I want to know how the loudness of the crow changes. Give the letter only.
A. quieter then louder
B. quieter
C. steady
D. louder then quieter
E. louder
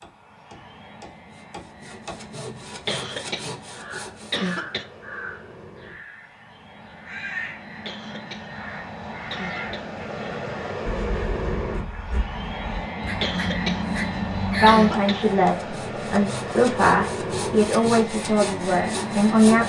E.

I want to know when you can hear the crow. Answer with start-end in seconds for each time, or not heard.
3.7-14.9.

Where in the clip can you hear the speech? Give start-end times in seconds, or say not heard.
14.5-19.6.